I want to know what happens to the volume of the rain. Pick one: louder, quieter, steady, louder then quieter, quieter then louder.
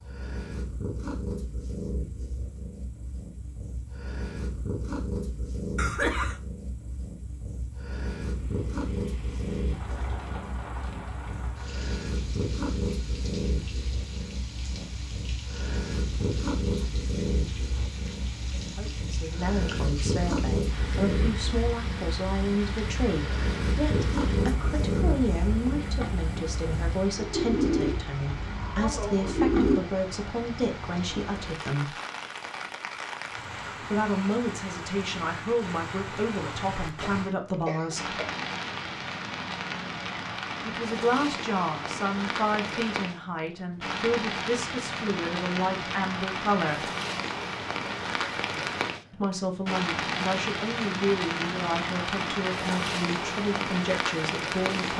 louder.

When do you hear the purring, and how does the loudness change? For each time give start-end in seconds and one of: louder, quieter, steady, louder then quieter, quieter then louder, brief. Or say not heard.
0.0-29.8 louder.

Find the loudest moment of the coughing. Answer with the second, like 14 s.
6 s.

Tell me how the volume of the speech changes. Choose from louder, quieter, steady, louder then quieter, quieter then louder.
steady.